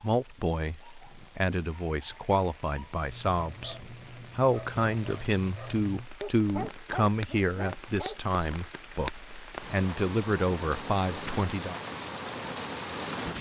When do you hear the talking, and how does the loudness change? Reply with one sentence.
The talking can be heard from 0.0 to 11.8 s, at a steady volume.